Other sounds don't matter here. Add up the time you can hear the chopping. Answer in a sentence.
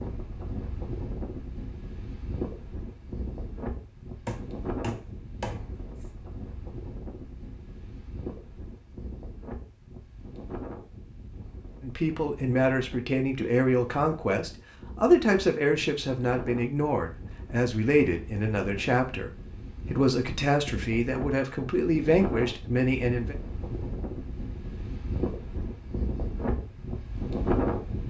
The chopping can be heard for 2 seconds in total.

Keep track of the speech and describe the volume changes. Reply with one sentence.
The loudness of the speech stays about the same.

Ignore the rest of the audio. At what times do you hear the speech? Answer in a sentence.
You can hear the speech from 11.8 to 23.4 s.